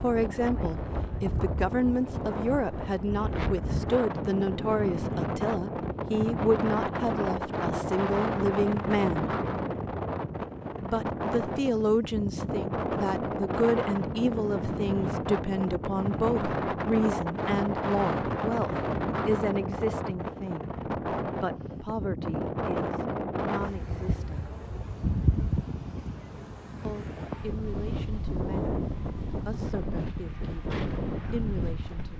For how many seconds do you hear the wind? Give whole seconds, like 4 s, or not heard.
32 s.